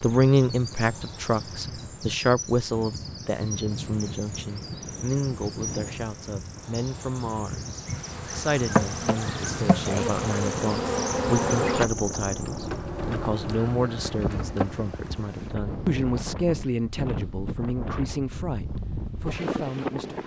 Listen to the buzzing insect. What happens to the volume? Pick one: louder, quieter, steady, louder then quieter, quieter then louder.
quieter.